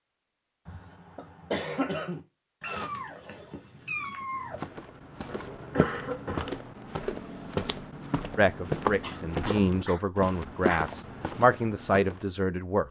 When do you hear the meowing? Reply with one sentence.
The meowing can be heard from 2.6 to 4.6 s and from 7.0 to 7.8 s.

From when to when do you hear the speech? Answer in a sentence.
The speech can be heard from 8.3 to 12.8 s.